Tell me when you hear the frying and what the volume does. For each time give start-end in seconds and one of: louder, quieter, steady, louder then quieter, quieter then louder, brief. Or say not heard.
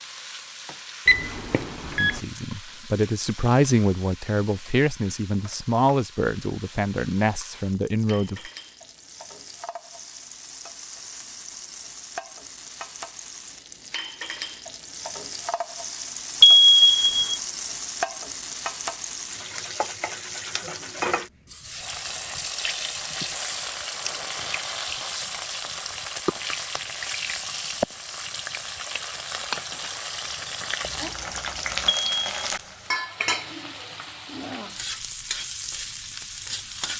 0.0-36.9 louder.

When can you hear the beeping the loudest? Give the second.
17 s.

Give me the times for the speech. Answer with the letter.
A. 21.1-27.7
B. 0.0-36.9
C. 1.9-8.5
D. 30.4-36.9
C.